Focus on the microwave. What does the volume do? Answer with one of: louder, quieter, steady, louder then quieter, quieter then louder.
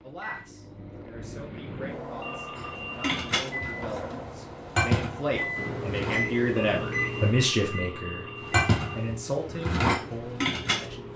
louder then quieter.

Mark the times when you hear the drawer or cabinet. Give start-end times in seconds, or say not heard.
not heard.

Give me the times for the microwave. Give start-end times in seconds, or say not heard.
0.0-11.1.